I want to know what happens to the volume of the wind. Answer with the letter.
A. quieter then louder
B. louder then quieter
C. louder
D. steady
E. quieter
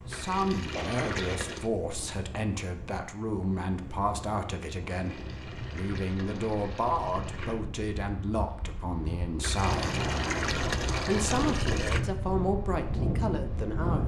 C.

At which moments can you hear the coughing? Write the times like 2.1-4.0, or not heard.
0.7-1.4.